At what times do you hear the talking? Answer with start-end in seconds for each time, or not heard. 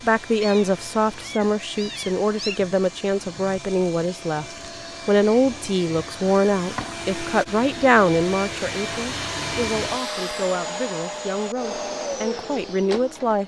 0.0-4.5, 5.0-13.4.